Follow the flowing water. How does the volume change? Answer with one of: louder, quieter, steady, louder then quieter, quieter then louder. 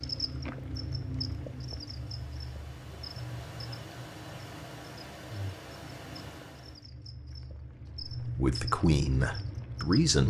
louder.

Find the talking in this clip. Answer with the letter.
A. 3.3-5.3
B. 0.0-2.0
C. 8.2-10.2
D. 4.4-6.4
C.